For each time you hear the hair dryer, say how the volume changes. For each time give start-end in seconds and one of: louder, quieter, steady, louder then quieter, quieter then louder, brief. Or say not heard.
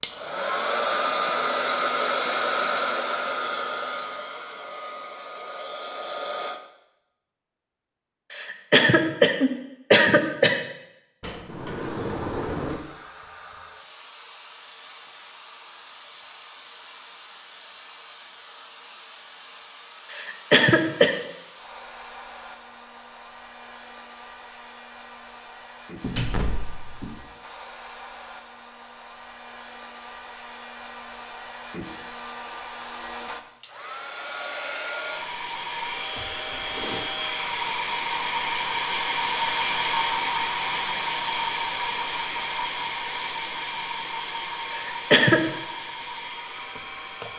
0.0-6.6 quieter
11.8-47.3 louder.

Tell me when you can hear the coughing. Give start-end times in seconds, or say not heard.
8.3-10.6, 20.1-21.1, 44.7-45.4.